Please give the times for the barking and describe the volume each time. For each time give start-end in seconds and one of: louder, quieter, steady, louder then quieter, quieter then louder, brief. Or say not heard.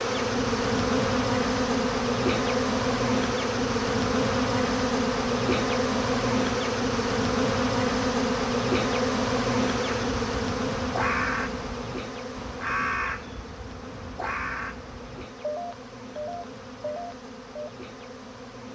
not heard.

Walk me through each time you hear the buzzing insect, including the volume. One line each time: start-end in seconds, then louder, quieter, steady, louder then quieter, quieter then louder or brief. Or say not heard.
0.0-18.7 quieter.